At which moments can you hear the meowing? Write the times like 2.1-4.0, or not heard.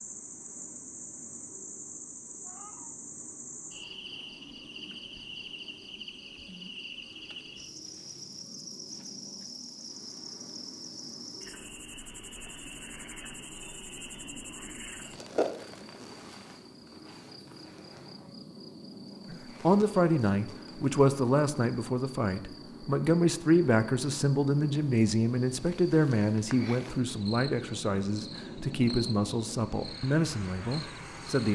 2.4-3.0.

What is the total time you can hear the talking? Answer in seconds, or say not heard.
12 s.